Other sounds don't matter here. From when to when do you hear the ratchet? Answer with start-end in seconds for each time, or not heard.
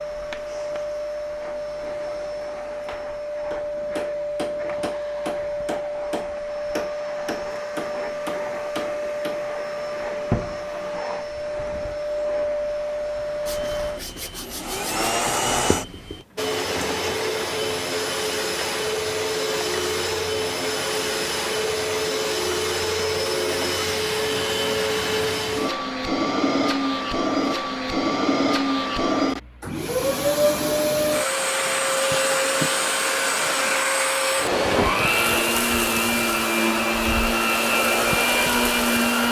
not heard.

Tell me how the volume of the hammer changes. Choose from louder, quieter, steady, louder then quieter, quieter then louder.
steady.